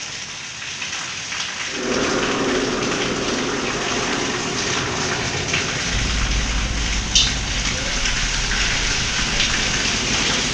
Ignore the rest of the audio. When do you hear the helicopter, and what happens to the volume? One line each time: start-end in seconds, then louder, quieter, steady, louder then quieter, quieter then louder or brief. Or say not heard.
1.6-10.5 quieter.